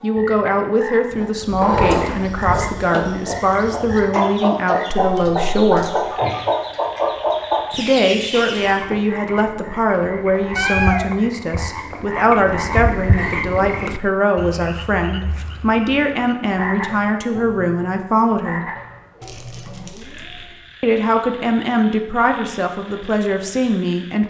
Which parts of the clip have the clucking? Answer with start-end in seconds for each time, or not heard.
1.1-8.8.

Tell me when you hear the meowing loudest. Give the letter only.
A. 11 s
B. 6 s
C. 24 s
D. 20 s
A.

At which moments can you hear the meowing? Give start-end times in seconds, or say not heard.
5.0-6.0, 10.3-11.9, 19.2-20.4.